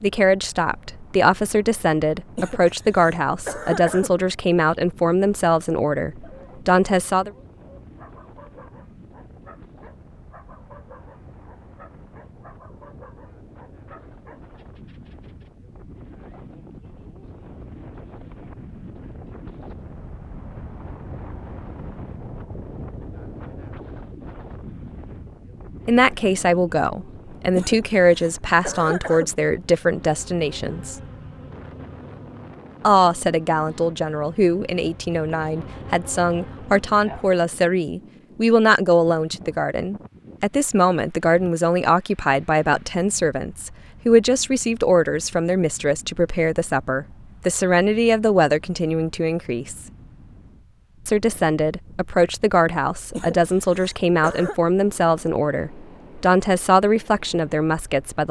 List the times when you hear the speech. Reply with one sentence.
The speech can be heard from 0.0 to 7.3 s, from 25.9 to 30.9 s, from 32.8 to 49.9 s and from 51.0 to 58.2 s.